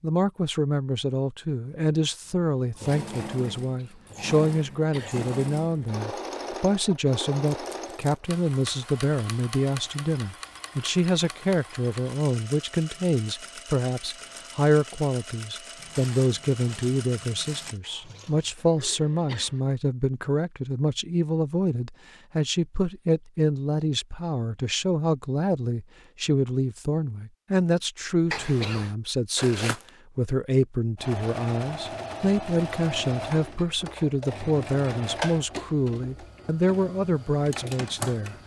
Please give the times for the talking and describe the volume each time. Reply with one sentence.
You can hear the talking from 0.0 to 38.4 s, at a steady volume.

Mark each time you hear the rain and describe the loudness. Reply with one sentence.
You can't hear the rain here.